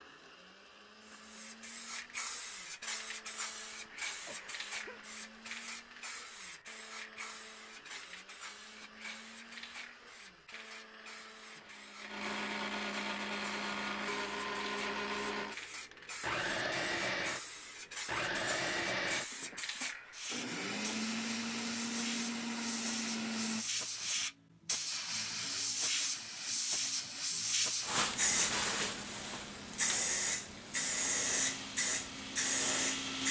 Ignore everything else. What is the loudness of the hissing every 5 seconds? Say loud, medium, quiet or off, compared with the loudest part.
medium, quiet, quiet, medium, medium, loud, loud.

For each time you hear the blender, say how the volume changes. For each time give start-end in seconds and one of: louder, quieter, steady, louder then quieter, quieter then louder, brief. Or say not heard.
0.0-23.6 louder
30.7-33.2 brief.